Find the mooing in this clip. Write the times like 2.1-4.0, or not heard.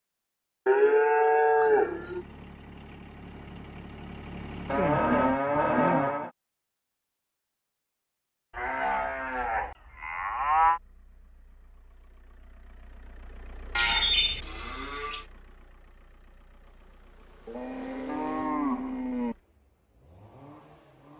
0.7-2.2, 4.7-6.3, 8.6-10.8, 13.8-15.2, 17.4-19.4.